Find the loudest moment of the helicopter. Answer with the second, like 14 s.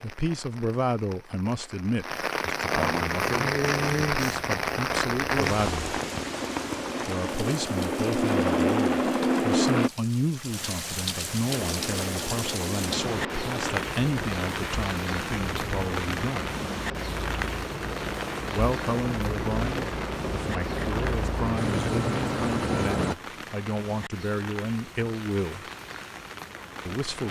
9 s.